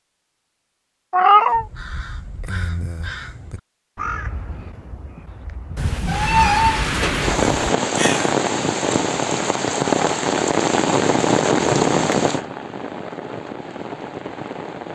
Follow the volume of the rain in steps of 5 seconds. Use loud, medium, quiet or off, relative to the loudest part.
off, loud, loud.